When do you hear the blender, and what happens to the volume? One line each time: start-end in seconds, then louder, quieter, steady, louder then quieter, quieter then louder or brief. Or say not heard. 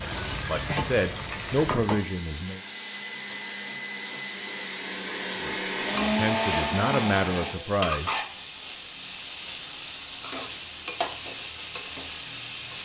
0.2-7.5 louder.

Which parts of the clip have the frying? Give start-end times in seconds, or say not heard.
0.0-12.7.